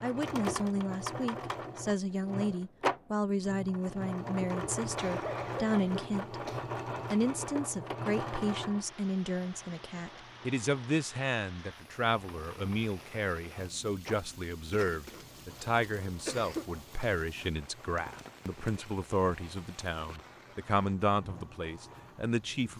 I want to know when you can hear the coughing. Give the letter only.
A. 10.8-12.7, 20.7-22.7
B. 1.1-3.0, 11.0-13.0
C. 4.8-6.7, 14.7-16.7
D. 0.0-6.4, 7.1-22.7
C.